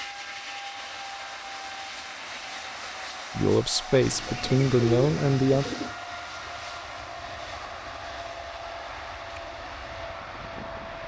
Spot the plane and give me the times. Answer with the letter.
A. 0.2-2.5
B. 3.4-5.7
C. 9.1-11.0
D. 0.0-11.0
D.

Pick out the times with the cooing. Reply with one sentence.
The cooing can be heard from 4.0 to 6.0 s.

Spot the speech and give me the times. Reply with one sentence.
You can hear the speech from 3.4 to 5.7 s.